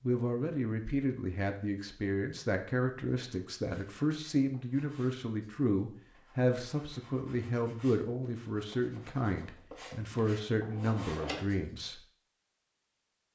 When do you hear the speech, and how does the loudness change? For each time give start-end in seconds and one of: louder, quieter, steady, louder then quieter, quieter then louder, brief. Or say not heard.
0.0-12.0 steady.